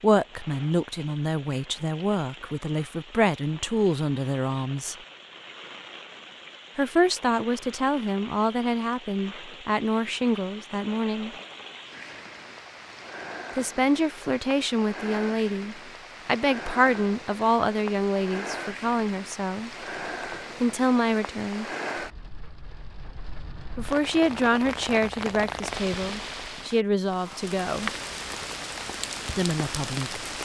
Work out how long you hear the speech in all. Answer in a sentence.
The speech can be heard for 22 seconds in total.